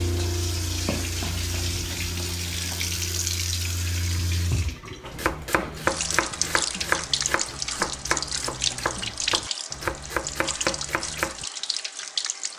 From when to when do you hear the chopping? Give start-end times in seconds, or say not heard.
5.0-11.4.